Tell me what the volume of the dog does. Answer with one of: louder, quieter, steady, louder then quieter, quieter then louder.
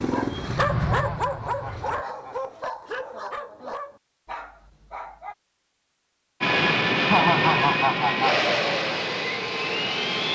quieter.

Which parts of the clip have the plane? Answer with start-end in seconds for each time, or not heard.
0.1-2.0, 6.4-10.2.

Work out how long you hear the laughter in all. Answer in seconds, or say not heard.
3 s.